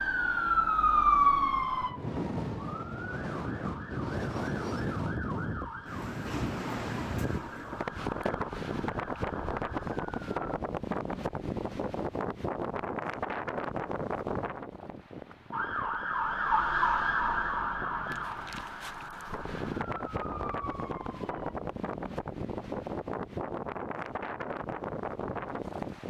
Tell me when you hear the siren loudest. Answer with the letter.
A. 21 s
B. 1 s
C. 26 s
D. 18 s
B.